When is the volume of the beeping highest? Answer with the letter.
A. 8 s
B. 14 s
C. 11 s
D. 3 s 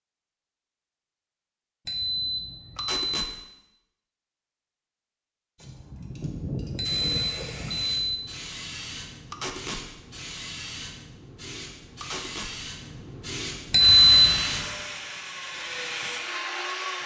B.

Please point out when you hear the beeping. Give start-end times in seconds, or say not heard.
1.9-3.2, 6.8-8.2, 13.7-14.4.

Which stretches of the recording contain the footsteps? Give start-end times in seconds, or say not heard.
not heard.